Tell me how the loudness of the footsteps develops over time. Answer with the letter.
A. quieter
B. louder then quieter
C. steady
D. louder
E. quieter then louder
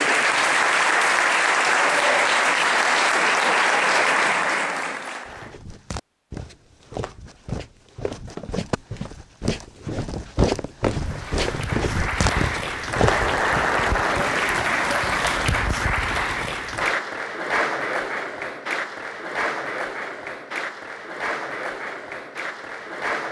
D.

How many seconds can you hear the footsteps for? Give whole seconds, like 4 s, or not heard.
8 s.